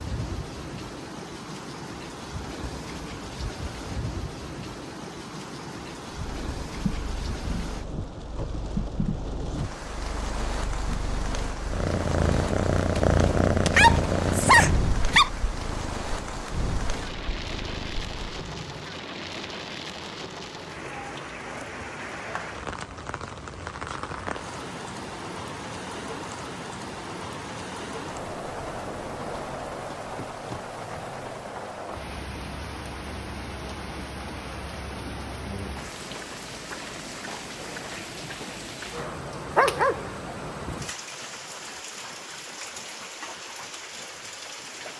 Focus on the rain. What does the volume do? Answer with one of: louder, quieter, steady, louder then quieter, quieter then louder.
steady.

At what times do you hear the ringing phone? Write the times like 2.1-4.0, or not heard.
not heard.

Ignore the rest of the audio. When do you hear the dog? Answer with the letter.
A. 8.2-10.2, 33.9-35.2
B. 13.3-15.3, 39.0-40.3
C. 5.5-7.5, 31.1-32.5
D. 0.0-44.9
B.